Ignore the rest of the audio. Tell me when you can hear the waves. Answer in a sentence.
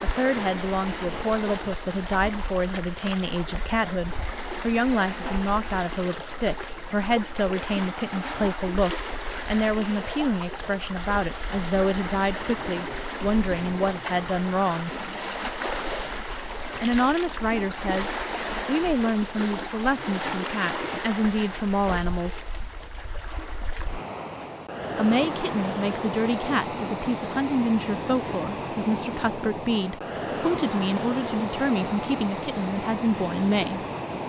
You can hear the waves from 0.0 to 34.2 s.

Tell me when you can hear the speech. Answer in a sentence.
The speech can be heard from 0.0 to 14.9 s, from 16.8 to 22.4 s and from 24.9 to 33.8 s.